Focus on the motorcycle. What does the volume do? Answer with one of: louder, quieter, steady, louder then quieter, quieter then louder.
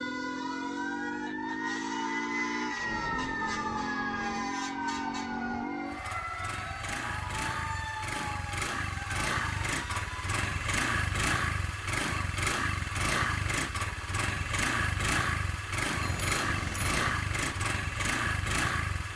louder.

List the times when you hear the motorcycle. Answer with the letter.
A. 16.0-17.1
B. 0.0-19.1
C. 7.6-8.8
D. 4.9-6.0
B.